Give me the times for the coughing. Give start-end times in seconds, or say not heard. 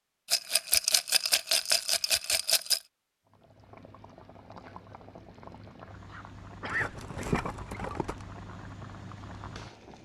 6.1-7.8.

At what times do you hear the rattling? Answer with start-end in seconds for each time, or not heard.
0.3-2.8, 6.7-8.2.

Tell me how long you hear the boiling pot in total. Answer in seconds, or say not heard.
7 s.